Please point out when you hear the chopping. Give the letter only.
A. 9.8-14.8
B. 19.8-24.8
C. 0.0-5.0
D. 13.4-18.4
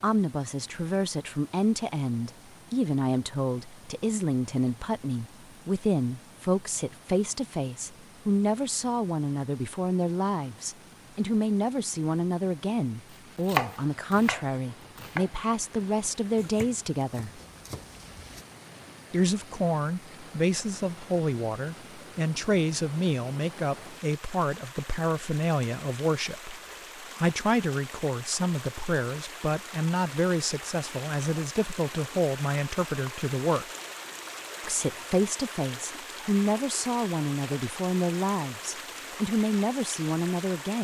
D.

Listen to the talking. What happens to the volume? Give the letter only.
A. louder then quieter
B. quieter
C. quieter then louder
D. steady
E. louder
D.